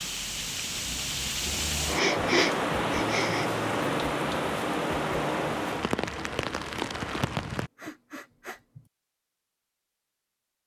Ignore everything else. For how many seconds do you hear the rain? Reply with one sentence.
You can hear the rain for 8 seconds altogether.